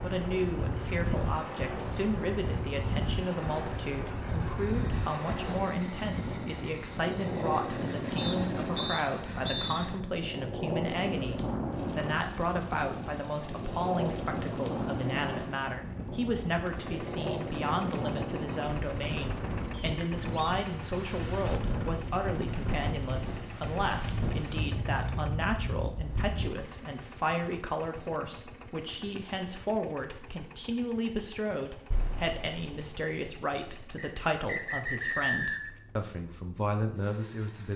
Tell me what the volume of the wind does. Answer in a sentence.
The volume of the wind stays about the same.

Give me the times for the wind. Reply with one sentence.
You can hear the wind from 0.0 to 26.6 s.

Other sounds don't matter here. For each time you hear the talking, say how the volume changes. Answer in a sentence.
The talking can be heard from 0.0 to 37.7 s, at a steady volume.